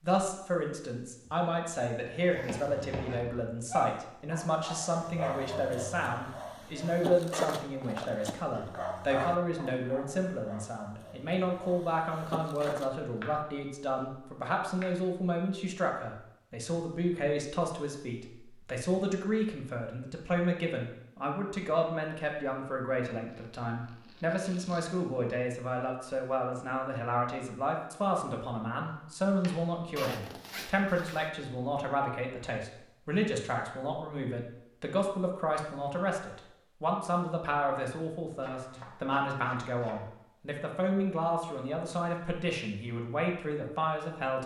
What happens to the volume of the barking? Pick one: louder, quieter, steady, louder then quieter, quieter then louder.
quieter.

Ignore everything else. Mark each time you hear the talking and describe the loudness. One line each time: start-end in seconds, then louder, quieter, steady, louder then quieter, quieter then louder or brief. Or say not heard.
0.0-44.4 steady.